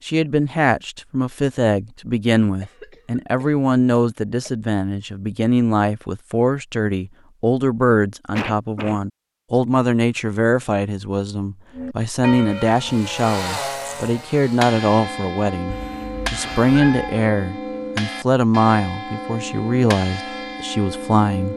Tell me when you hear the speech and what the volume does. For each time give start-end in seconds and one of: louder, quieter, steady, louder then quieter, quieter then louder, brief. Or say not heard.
0.1-21.5 steady.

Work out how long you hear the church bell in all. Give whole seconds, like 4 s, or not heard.
10 s.